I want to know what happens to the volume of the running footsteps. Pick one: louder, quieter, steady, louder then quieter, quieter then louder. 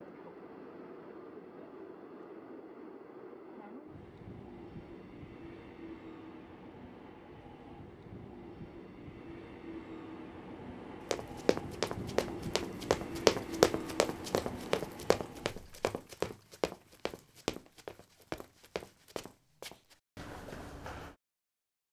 quieter.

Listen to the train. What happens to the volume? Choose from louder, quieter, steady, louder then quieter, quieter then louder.
louder.